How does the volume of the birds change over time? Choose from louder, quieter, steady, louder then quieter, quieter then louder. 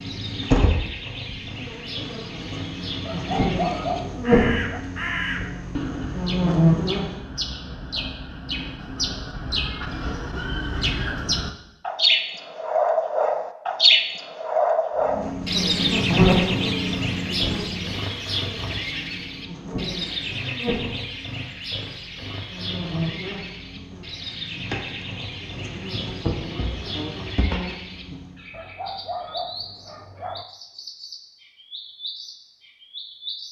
louder then quieter.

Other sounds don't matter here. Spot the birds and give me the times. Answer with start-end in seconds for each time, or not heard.
0.0-33.4.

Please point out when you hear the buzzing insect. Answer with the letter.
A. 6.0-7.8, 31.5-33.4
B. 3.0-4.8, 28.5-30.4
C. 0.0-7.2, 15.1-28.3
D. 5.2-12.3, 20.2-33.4
C.